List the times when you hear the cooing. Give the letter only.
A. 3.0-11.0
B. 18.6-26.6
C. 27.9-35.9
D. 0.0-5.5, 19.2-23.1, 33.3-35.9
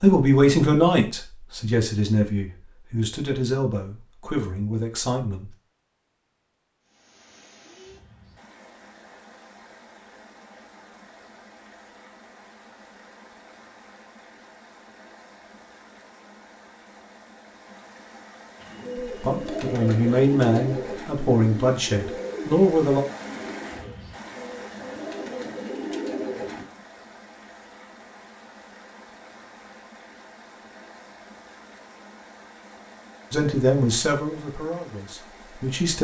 B.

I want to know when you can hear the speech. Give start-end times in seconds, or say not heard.
0.0-5.5, 19.2-23.1, 33.3-35.9.